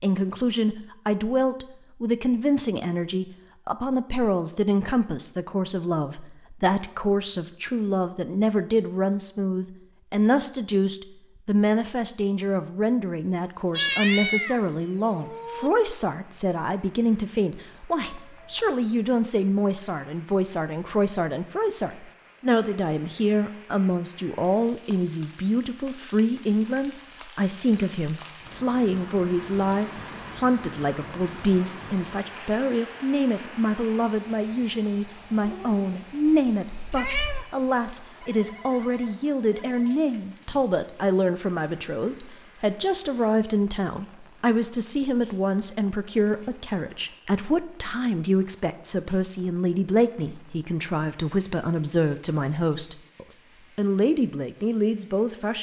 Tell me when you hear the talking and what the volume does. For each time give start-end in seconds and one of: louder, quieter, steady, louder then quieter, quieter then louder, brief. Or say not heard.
0.0-55.5 steady.